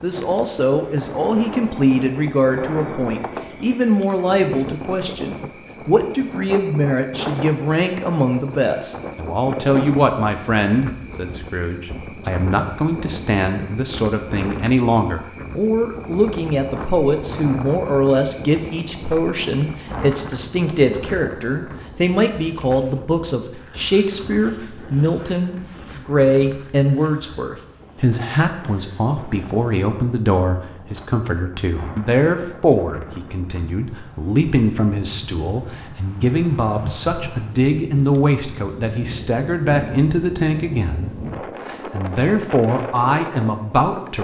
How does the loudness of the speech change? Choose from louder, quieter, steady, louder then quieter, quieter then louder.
steady.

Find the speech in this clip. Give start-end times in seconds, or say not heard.
0.0-44.1.